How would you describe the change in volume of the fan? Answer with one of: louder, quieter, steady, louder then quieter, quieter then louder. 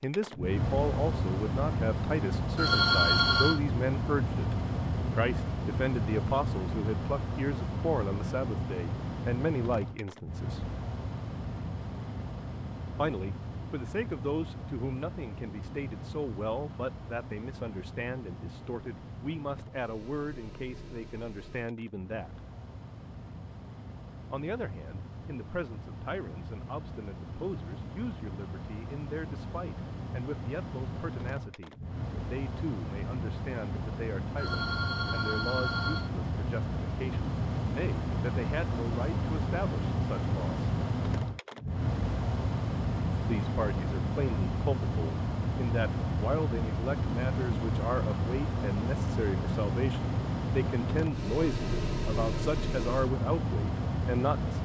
quieter then louder.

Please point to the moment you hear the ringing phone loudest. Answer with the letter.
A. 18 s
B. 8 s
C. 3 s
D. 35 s
C.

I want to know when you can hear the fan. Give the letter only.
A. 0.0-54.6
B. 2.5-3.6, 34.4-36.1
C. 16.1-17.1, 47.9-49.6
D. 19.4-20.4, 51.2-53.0
A.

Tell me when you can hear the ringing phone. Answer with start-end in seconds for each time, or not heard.
2.5-3.6, 34.4-36.1.